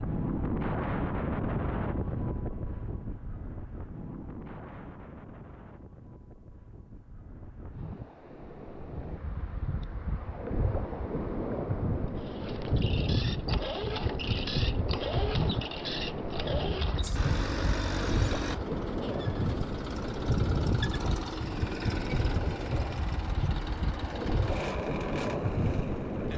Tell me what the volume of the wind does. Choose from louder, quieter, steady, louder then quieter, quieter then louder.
quieter then louder.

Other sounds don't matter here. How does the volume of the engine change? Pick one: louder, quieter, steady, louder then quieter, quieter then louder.
steady.